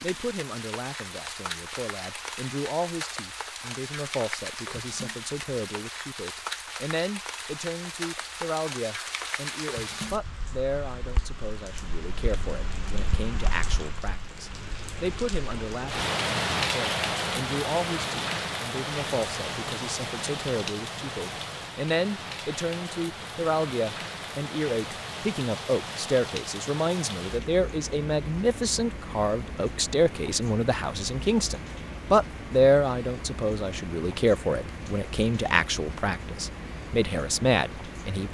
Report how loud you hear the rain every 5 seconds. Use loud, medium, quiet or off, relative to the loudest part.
medium, medium, medium, loud, medium, medium, medium, medium.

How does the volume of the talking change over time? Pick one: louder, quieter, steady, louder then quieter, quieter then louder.
louder.